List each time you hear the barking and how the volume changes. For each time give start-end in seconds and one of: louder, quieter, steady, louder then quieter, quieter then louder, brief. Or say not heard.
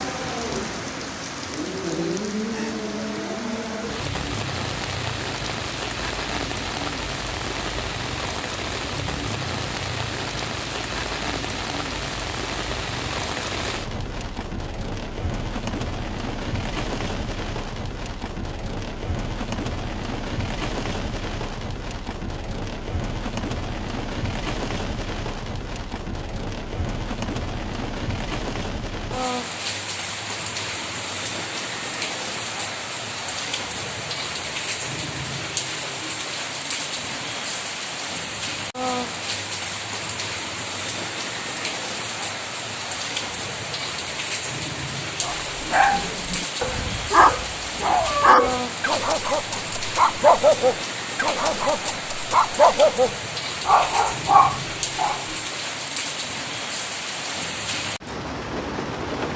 45.2-55.2 steady.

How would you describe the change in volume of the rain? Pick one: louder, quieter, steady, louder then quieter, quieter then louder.
steady.